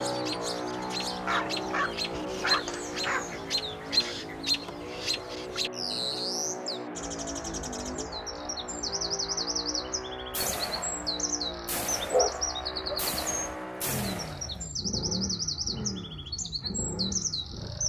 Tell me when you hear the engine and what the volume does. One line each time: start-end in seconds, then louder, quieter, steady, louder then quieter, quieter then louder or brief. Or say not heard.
0.0-17.8 steady.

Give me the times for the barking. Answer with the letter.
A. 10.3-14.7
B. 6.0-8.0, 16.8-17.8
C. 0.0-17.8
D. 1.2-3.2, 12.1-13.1
D.